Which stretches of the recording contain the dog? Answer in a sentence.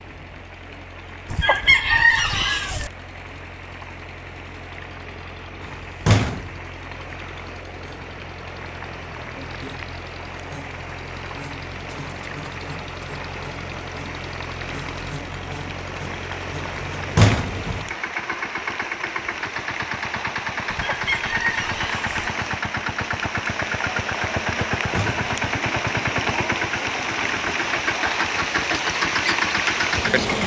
The dog can't be heard in this clip.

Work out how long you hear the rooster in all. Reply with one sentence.
The rooster can be heard for 3 seconds in total.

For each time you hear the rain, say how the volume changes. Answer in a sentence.
You can hear the rain from 0.0 to 30.4 s, getting louder.